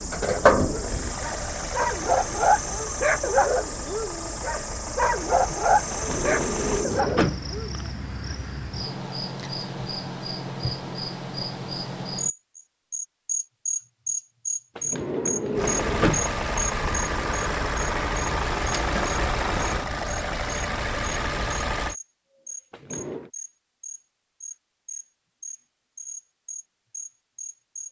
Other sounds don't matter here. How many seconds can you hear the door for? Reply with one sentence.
The door can be heard for 4 seconds in total.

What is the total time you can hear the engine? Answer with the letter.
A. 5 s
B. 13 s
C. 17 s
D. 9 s
B.